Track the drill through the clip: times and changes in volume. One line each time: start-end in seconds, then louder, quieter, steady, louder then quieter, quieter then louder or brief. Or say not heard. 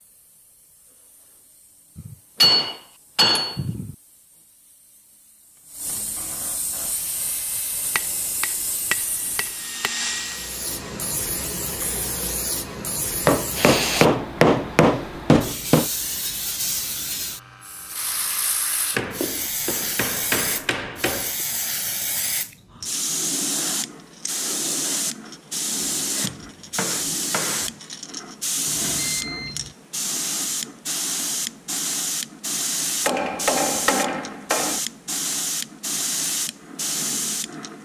6.8-11.1 louder.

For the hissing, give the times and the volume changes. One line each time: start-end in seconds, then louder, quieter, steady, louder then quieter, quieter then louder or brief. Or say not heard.
0.0-37.8 louder.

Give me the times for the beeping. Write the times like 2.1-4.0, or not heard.
28.6-29.8.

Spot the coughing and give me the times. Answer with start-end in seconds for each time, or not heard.
not heard.